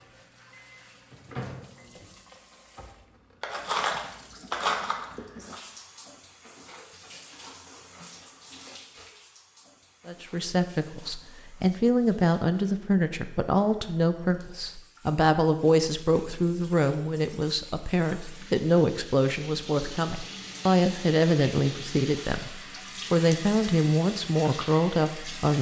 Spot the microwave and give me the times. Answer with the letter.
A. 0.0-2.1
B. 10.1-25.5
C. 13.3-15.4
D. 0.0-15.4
A.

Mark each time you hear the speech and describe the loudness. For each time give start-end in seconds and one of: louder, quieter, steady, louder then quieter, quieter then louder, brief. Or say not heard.
10.1-25.5 steady.